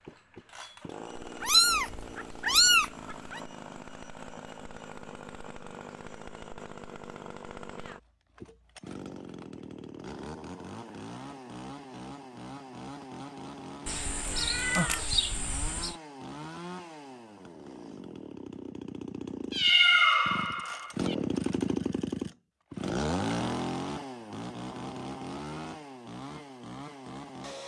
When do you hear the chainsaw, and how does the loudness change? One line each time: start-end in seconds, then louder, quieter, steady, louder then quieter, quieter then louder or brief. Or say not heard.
0.0-27.6 louder.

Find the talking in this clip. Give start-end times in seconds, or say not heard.
not heard.